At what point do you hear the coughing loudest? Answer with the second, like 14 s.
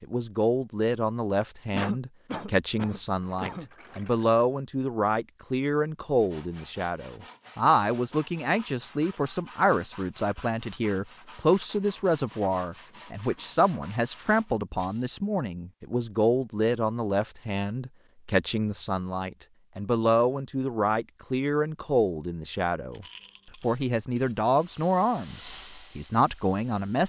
2 s.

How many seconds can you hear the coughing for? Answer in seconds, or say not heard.
2 s.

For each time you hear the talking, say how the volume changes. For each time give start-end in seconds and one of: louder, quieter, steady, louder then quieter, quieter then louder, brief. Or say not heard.
0.0-27.0 steady.